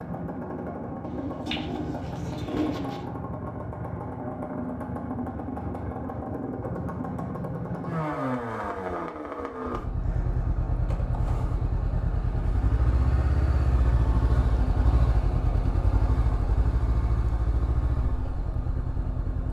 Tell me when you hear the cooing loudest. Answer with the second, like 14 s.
3 s.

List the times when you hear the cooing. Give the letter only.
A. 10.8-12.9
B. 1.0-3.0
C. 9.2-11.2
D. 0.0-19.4
B.